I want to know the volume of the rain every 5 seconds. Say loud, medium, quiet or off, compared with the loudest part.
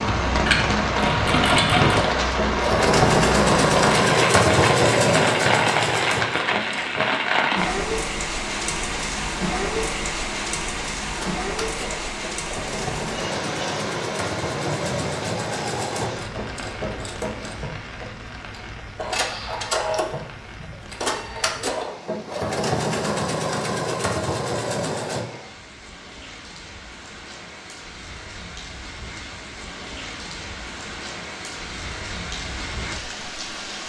loud, loud, medium, quiet, quiet, quiet, medium.